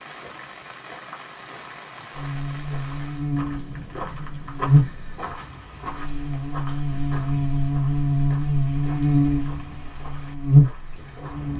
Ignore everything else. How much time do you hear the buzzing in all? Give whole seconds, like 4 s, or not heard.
9 s.